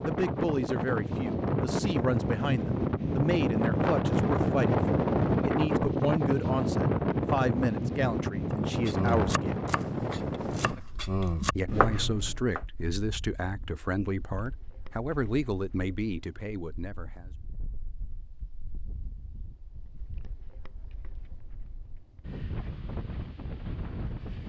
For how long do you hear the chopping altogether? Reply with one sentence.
You can hear the chopping for 4 seconds altogether.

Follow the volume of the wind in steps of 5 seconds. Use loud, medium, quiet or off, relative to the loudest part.
loud, loud, medium, quiet, quiet.